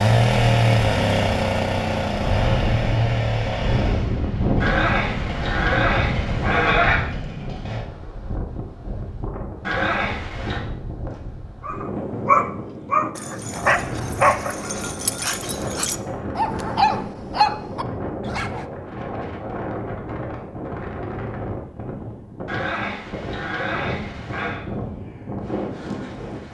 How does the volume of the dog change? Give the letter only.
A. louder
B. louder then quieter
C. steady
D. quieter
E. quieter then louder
E.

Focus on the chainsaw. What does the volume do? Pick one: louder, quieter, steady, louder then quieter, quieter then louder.
quieter.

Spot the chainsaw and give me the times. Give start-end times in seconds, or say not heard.
0.0-7.8.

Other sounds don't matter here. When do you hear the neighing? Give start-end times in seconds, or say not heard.
4.6-7.0, 9.6-10.6, 22.4-24.6.